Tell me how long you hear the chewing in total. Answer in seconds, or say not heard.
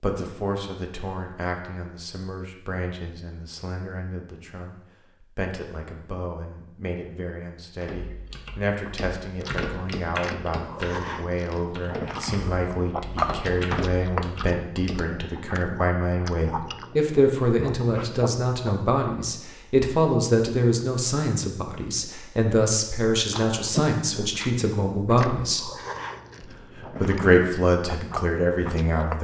15 s.